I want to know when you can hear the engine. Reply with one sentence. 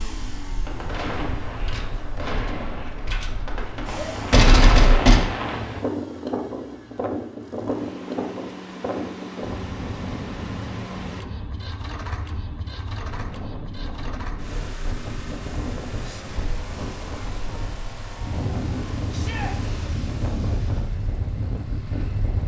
You can hear the engine from 0.0 to 22.4 s.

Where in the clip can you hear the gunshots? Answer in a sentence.
You can hear the gunshots from 0.7 to 5.2 s.